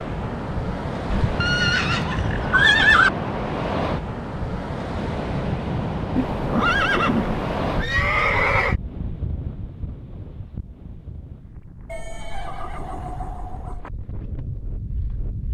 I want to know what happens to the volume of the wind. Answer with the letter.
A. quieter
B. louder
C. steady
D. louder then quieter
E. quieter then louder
A.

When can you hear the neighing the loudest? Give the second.
3 s.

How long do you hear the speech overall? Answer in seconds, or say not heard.
not heard.